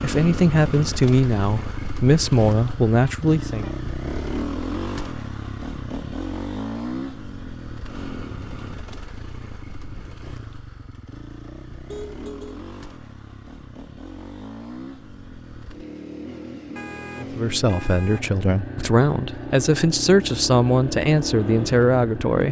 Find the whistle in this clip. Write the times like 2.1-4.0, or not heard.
not heard.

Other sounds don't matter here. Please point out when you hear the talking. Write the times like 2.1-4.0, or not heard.
0.0-3.7, 17.1-22.4.